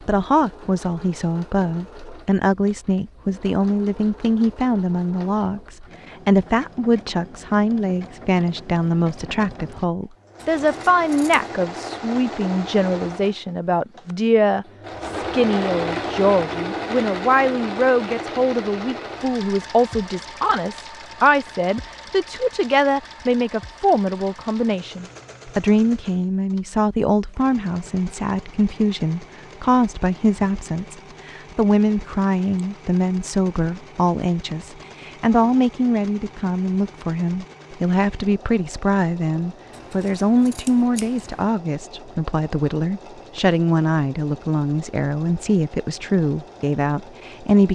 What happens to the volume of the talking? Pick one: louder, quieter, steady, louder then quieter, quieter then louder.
steady.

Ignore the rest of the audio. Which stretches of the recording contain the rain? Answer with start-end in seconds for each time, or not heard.
not heard.